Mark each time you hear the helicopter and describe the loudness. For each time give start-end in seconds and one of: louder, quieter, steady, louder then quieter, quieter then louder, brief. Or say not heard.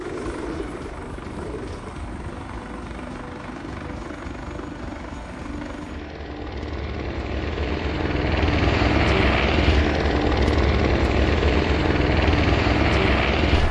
0.0-13.6 louder.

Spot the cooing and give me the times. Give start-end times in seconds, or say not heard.
0.0-2.0.